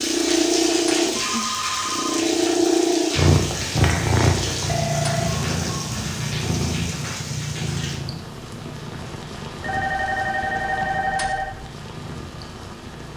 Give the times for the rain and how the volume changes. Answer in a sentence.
The rain can be heard from 0.0 to 13.1 s, getting quieter.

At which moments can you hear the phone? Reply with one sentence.
The phone can be heard from 1.1 to 2.5 s, from 4.7 to 5.9 s and from 9.6 to 11.6 s.